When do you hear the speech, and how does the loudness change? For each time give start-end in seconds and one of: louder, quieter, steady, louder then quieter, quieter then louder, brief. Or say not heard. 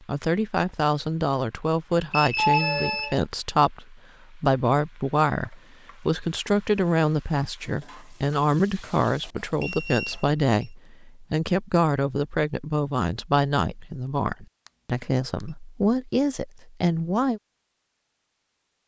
0.1-17.4 steady.